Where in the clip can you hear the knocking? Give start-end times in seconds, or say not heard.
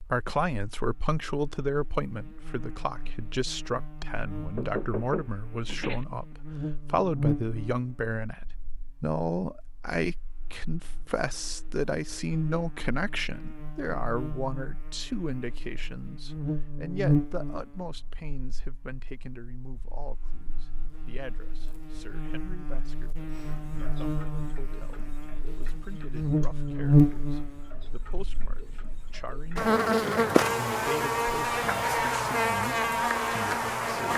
4.5-6.0.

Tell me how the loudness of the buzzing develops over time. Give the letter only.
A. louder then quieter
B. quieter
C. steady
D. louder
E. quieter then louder
E.